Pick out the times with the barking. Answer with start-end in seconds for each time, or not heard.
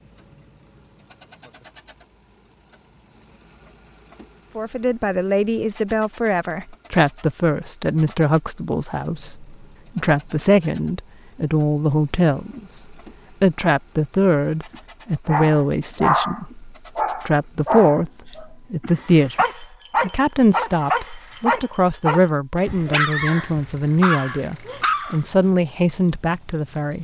14.7-25.2.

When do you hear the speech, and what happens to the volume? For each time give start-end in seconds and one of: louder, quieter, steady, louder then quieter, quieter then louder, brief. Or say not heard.
4.5-26.9 steady.